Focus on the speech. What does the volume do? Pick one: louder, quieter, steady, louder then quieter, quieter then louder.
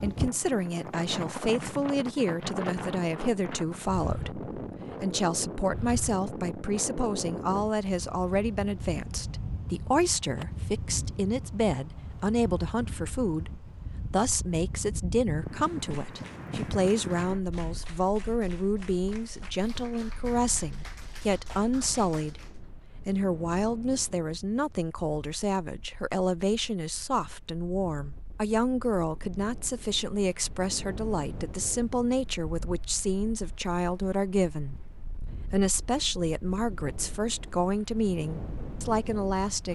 steady.